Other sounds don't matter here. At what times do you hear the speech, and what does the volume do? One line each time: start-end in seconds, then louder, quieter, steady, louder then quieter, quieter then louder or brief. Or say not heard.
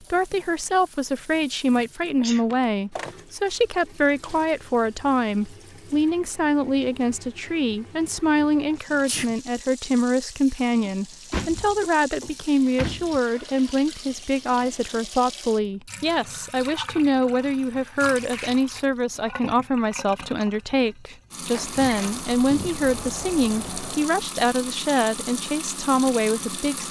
0.1-26.8 steady.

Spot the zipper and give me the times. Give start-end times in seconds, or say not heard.
not heard.